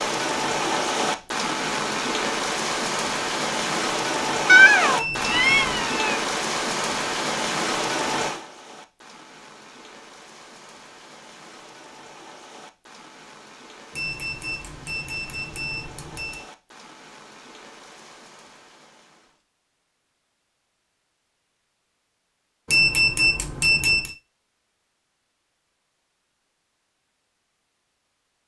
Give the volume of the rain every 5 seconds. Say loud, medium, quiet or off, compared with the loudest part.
loud, loud, quiet, quiet, off, off.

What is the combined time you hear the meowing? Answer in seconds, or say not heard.
2 s.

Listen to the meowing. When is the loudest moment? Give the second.
5 s.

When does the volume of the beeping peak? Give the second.
23 s.